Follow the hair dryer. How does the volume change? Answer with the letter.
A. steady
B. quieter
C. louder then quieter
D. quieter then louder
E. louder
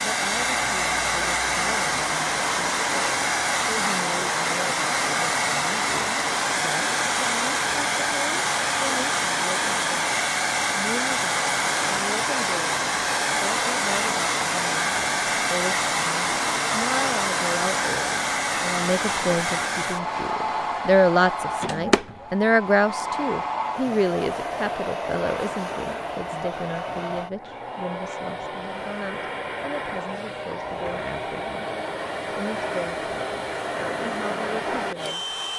B.